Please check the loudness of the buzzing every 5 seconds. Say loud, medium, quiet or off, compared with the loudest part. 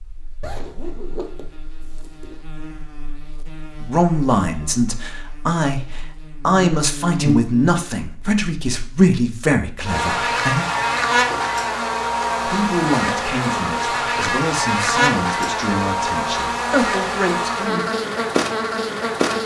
quiet, medium, loud, loud.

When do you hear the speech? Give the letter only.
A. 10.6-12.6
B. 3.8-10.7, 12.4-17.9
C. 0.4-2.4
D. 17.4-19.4
B.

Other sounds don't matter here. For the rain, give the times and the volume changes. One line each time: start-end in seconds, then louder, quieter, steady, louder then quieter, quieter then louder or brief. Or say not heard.
not heard.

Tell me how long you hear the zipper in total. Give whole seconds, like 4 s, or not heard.
2 s.